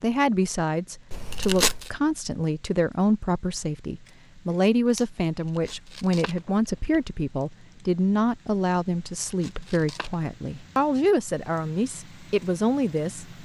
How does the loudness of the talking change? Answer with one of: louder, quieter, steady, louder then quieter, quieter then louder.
steady.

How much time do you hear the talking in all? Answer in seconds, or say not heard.
13 s.